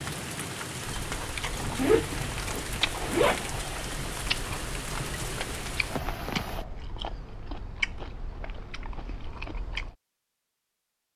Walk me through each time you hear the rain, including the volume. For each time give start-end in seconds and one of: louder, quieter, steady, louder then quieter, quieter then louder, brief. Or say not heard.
0.0-6.7 steady.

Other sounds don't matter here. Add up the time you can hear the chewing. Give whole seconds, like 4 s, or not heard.
9 s.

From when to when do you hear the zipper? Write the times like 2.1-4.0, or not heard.
1.8-3.5.